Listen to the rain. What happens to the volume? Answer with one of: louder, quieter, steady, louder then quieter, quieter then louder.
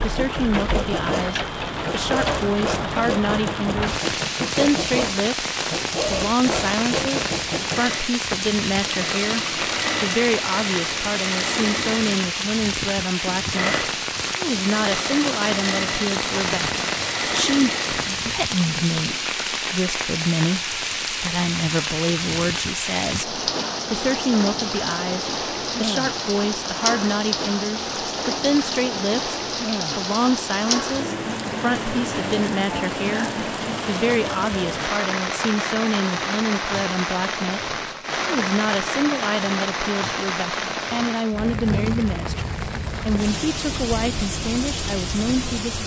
steady.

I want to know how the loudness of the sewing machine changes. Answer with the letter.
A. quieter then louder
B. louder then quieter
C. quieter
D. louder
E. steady
E.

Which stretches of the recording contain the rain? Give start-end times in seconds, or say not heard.
0.0-45.8.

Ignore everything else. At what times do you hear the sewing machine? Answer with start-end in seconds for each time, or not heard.
0.0-19.4.